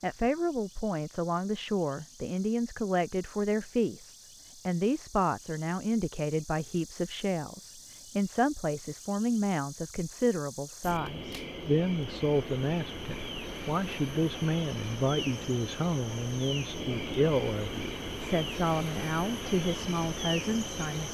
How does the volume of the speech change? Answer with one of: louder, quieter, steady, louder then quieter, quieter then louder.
steady.